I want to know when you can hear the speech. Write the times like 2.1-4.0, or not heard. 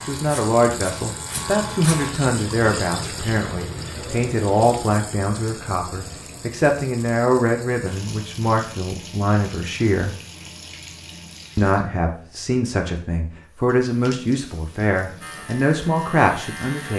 0.1-10.2, 11.6-16.9.